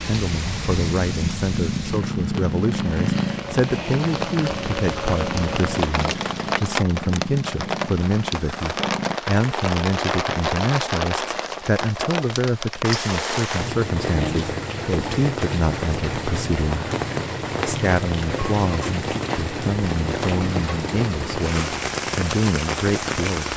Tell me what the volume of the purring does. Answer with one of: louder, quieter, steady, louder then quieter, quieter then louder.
quieter.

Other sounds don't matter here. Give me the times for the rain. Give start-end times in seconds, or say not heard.
0.0-23.5.